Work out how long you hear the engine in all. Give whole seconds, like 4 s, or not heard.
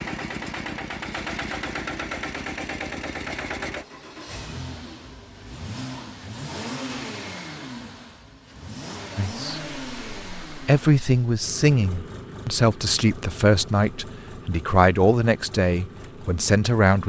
17 s.